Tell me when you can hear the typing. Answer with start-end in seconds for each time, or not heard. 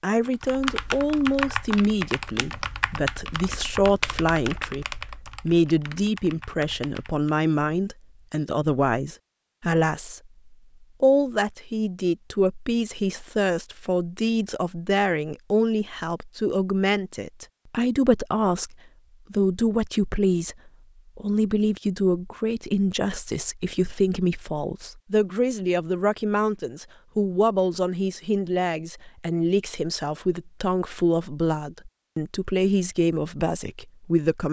0.2-7.4.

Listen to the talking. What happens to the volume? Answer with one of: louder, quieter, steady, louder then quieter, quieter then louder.
steady.